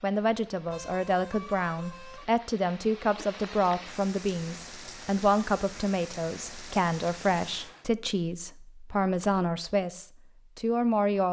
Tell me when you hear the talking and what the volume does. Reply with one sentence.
You can hear the talking from 0.0 to 11.2 s, at a steady volume.